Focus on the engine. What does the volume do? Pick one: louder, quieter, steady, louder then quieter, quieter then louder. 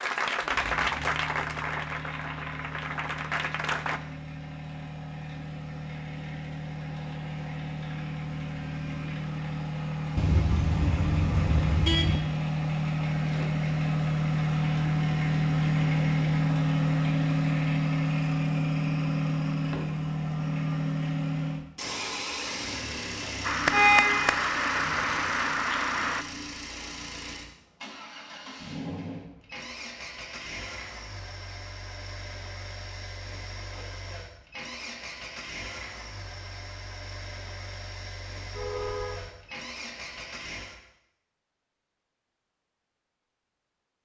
louder then quieter.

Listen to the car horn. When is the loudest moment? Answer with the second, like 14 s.
24 s.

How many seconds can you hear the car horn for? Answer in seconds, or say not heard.
4 s.